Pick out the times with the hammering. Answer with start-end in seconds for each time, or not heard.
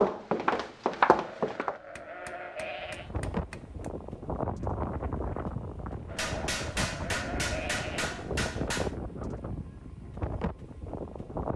1.9-3.9, 6.2-8.9.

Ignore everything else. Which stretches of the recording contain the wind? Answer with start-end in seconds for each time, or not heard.
2.8-11.5.